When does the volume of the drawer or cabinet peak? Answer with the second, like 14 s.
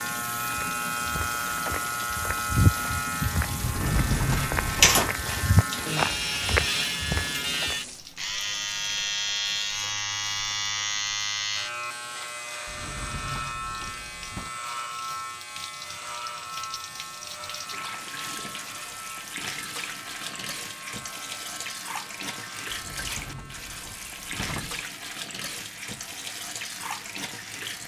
4 s.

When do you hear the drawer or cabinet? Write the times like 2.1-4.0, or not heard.
3.6-5.0, 12.7-14.5, 22.7-24.9.